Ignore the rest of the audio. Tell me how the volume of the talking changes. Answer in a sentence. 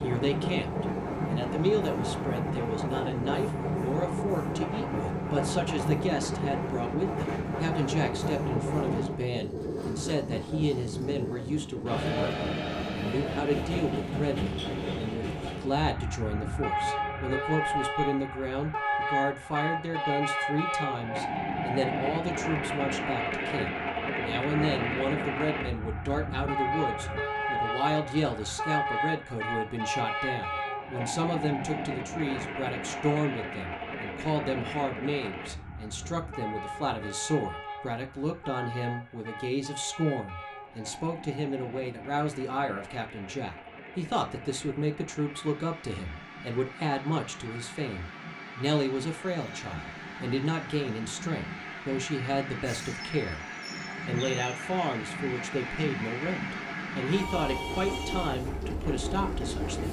The volume of the talking stays about the same.